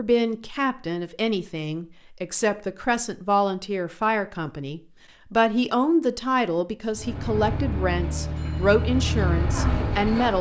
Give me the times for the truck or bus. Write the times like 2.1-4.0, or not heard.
7.0-10.3.